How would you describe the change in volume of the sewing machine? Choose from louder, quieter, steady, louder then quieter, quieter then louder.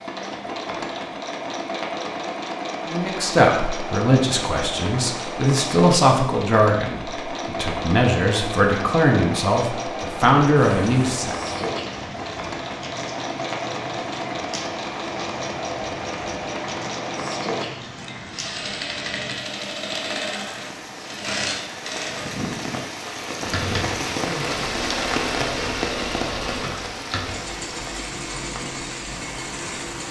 steady.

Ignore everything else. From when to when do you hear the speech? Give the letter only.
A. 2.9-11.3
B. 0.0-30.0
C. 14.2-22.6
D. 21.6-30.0
A.